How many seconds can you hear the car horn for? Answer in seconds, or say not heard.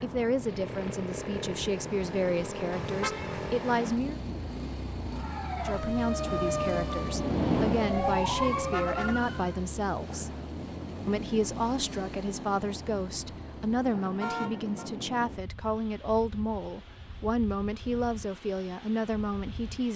2 s.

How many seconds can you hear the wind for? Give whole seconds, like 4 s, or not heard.
20 s.